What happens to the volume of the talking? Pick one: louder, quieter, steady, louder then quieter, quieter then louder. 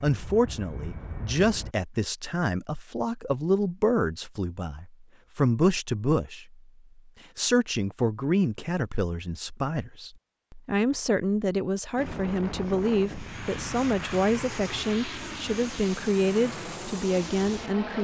steady.